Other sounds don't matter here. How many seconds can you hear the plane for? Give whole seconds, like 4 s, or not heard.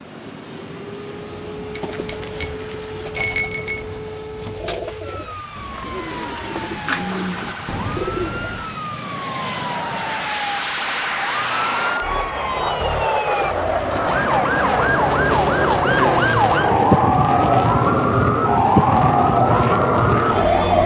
21 s.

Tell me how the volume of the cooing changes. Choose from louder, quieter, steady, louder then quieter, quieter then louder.
louder.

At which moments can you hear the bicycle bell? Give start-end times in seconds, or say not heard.
1.8-3.9, 11.5-12.4.